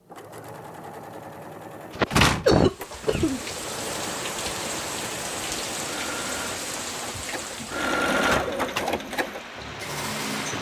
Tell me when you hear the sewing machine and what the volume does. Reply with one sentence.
The sewing machine can be heard from 0.0 to 10.5 s, getting louder.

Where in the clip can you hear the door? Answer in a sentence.
The door can be heard from 2.1 to 3.2 s and from 7.2 to 8.8 s.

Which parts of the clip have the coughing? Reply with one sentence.
The coughing can be heard from 1.9 to 3.4 s.